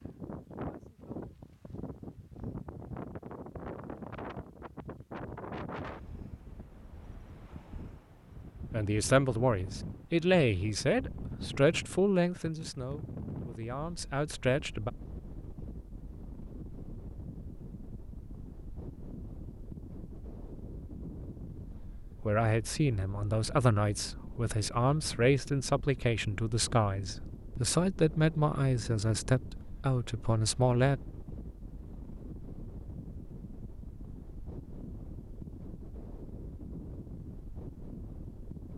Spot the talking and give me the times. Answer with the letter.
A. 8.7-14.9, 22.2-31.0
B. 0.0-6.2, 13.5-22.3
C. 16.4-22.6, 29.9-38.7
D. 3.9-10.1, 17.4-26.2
A.